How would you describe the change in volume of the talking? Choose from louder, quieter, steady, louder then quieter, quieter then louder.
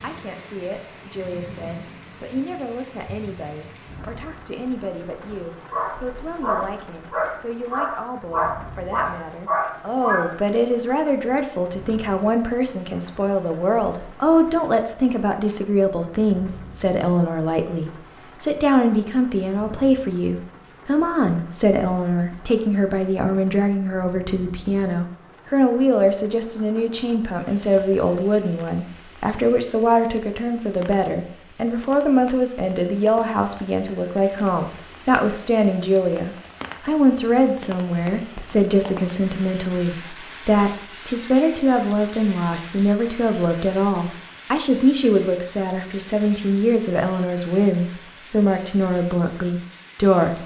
louder.